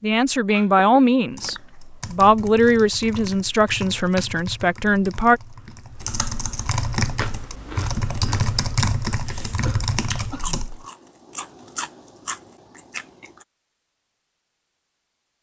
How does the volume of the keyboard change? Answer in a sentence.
The loudness of the keyboard goes up.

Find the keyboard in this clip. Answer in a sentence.
You can hear the keyboard from 1.3 to 10.8 s.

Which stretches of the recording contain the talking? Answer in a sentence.
You can hear the talking from 0.0 to 5.4 s.